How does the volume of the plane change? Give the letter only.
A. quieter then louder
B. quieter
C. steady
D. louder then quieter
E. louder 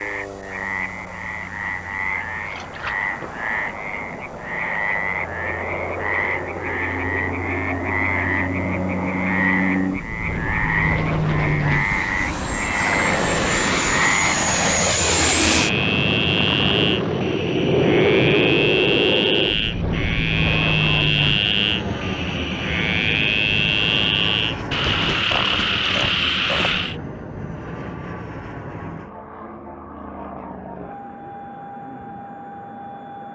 D.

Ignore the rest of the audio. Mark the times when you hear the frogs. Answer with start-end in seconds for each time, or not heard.
0.0-26.9.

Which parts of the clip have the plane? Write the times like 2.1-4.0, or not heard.
0.0-33.3.